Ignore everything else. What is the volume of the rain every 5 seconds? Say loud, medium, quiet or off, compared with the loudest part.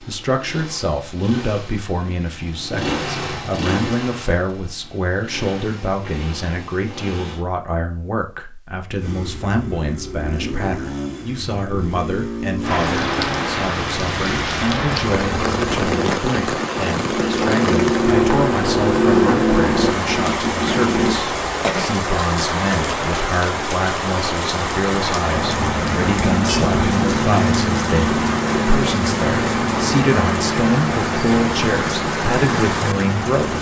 off, off, loud, loud, loud, loud, loud.